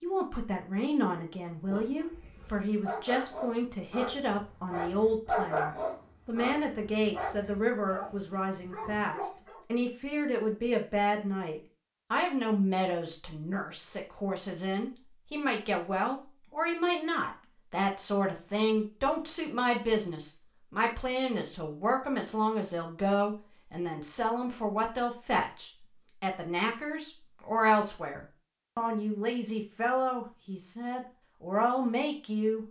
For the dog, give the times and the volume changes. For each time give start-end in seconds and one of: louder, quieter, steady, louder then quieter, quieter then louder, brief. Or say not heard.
1.6-9.7 louder then quieter.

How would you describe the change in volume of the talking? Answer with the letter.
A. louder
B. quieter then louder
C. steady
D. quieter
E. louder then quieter
C.